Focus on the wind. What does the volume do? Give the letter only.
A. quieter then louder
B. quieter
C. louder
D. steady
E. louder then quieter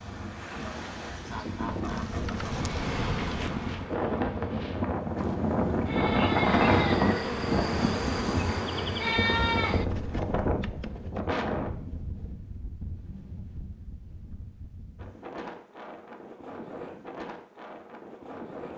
E.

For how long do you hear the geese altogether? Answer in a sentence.
You can hear the geese for 3 seconds altogether.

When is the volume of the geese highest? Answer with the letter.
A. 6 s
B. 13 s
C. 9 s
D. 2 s
D.